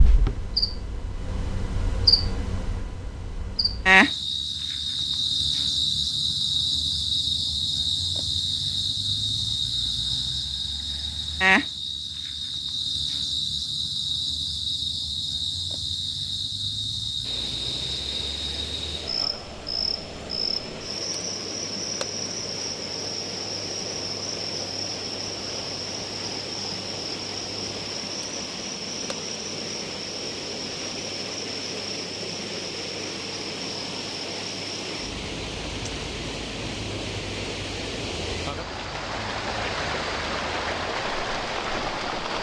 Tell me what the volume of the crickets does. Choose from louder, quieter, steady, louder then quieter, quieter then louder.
quieter.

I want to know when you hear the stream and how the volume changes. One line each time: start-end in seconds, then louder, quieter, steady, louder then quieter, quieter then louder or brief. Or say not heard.
17.2-42.3 louder.